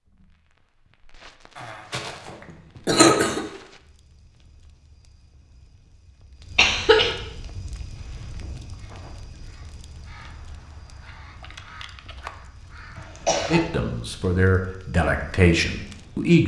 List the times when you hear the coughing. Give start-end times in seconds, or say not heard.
1.6-3.4, 6.5-7.2, 12.9-13.7.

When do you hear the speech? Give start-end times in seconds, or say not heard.
13.4-16.4.